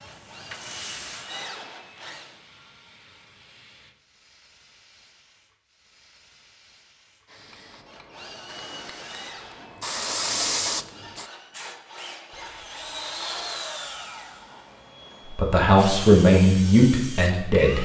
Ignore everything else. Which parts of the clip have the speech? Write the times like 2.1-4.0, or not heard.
15.3-17.7.